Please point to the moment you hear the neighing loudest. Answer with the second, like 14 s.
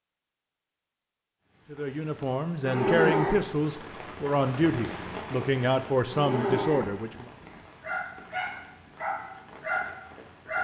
3 s.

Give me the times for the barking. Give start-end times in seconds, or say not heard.
7.8-10.5.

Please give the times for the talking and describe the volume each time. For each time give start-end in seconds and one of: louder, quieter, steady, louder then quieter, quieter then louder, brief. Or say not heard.
1.7-7.3 steady.